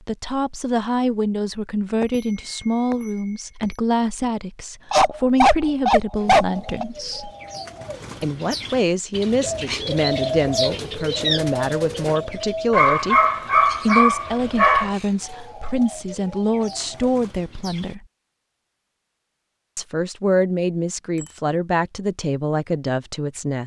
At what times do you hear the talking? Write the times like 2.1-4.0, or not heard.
0.1-7.3, 8.2-13.2, 13.8-18.1, 19.8-23.6.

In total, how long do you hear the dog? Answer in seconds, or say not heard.
4 s.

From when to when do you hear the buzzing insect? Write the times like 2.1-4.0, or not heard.
not heard.